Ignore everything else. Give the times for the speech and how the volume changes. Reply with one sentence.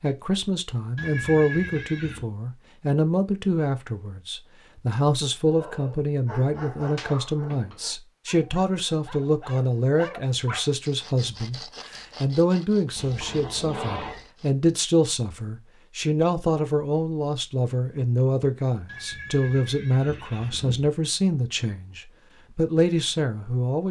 You can hear the speech from 0.0 to 23.8 s, at a steady volume.